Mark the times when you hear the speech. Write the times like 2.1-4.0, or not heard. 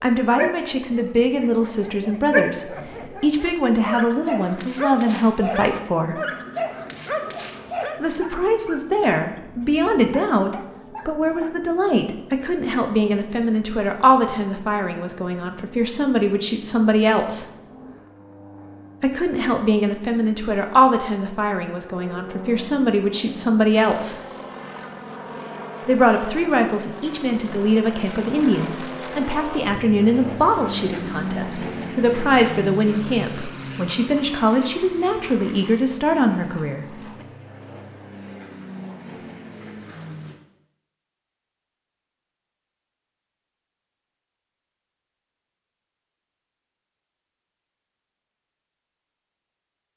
0.0-6.2, 8.0-17.4, 19.0-24.1, 25.9-37.0.